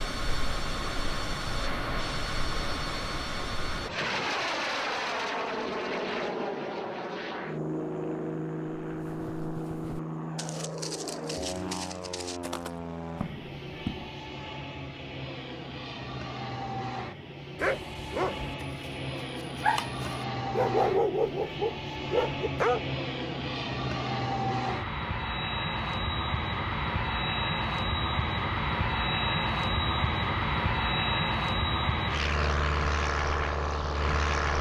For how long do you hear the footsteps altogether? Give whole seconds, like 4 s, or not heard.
5 s.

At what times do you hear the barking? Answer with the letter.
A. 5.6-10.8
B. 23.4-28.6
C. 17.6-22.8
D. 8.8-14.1
C.